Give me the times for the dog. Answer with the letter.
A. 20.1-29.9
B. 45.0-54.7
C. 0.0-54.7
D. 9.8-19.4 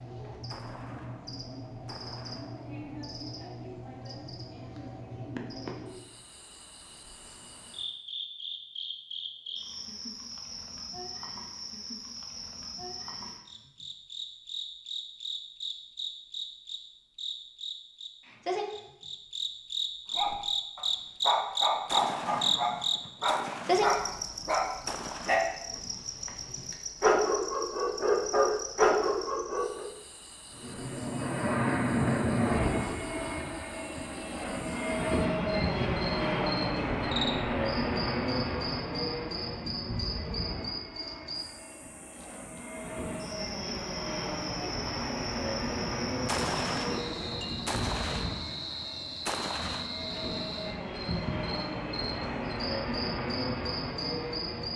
A.